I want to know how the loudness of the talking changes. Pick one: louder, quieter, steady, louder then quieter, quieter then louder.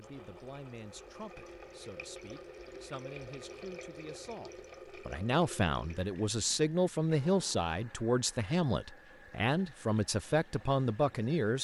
louder.